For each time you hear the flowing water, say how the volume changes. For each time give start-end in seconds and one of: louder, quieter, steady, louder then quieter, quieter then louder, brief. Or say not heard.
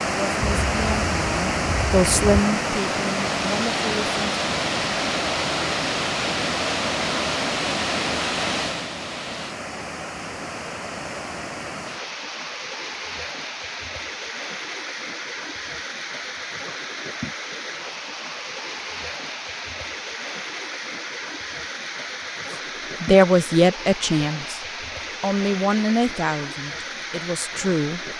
0.0-28.1 quieter.